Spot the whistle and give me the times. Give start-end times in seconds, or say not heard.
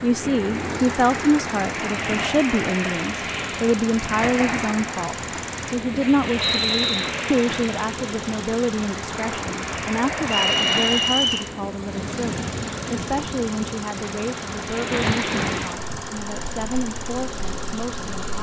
6.3-7.2, 10.4-11.4.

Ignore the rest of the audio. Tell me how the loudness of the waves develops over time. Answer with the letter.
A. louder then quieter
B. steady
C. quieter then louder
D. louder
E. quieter
B.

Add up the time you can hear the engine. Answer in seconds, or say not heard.
18 s.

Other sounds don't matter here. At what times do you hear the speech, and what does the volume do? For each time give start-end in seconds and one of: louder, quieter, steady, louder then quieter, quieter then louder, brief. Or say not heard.
0.0-18.3 quieter.